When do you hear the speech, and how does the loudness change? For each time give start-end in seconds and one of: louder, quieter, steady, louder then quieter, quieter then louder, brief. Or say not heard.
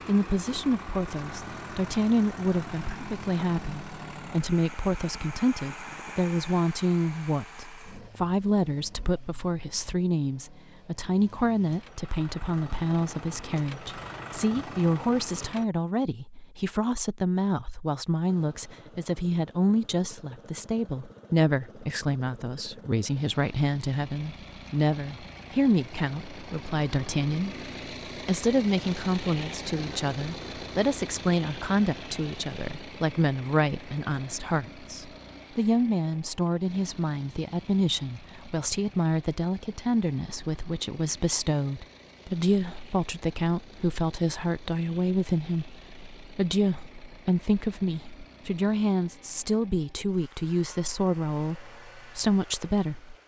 0.1-27.6 steady
28.2-53.1 steady.